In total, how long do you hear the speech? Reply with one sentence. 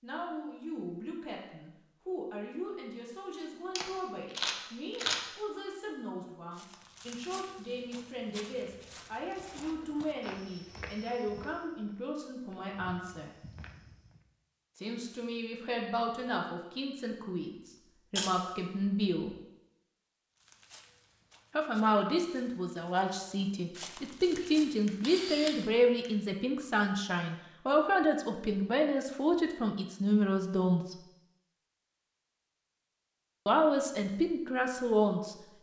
The speech can be heard for 29 seconds in total.